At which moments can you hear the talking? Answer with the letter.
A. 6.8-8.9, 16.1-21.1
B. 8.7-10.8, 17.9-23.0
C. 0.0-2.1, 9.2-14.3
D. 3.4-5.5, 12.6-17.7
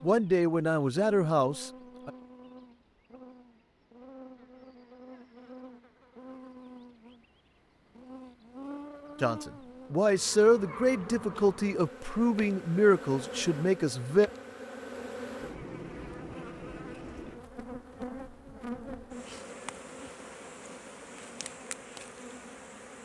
C.